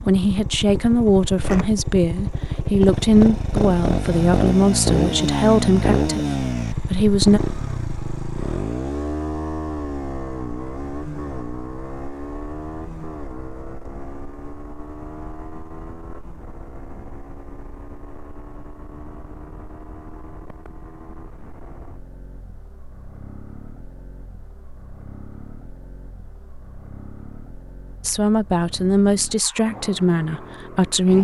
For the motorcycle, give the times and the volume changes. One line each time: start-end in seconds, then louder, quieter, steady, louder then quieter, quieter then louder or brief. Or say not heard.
0.0-31.2 quieter.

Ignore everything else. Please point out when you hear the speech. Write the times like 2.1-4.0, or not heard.
0.1-7.4, 28.0-31.2.